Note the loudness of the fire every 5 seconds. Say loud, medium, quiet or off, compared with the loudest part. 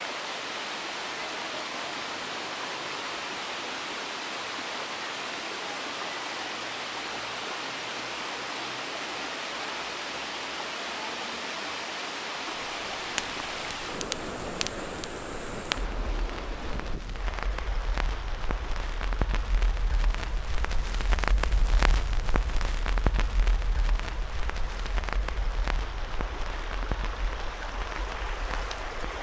off, off, loud, loud, loud, medium.